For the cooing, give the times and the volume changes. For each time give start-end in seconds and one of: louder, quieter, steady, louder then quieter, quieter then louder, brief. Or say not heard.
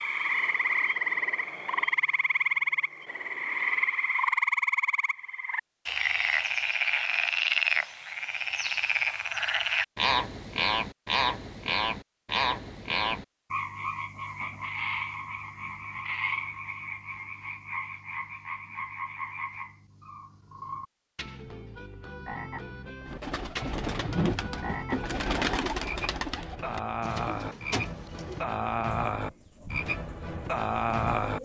23.1-31.3 quieter.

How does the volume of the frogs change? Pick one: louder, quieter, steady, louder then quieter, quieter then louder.
quieter then louder.